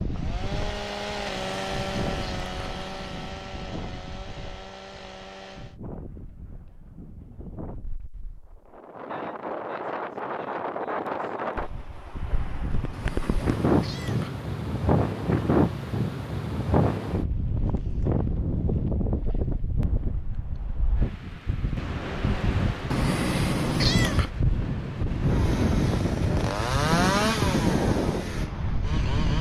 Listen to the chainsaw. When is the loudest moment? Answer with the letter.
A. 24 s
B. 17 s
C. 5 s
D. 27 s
D.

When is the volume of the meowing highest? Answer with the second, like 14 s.
24 s.